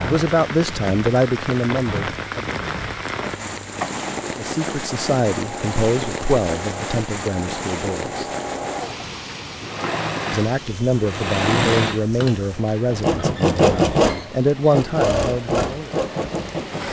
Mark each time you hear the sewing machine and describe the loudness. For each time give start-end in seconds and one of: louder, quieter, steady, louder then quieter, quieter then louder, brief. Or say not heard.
0.0-16.8 louder.